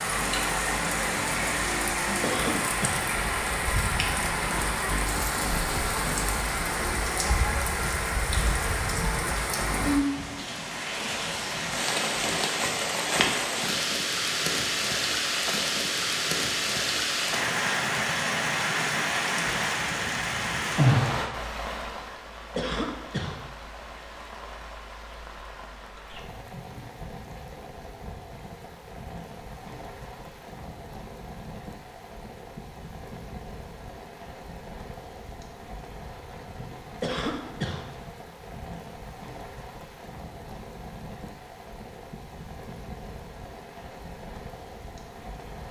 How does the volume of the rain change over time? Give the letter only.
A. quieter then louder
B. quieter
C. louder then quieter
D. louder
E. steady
B.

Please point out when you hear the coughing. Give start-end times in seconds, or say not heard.
2.2-3.1, 22.6-23.4, 37.0-37.9.